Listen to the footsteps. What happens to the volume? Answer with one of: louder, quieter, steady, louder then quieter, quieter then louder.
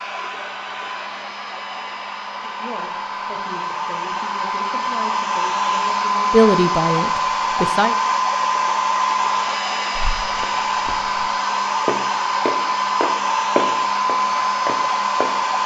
louder then quieter.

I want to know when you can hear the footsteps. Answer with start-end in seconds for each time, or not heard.
10.0-15.4.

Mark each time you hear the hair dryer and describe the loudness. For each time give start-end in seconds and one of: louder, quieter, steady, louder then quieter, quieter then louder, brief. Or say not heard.
0.0-15.6 louder.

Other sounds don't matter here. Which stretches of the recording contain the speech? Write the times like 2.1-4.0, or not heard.
2.4-8.0.